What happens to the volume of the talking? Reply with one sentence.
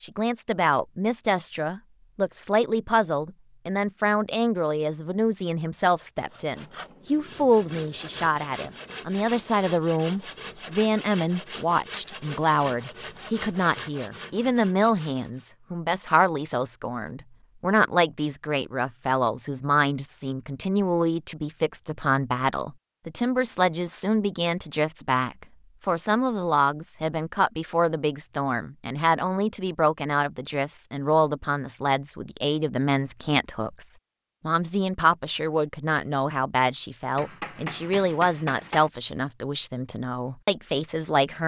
The loudness of the talking stays about the same.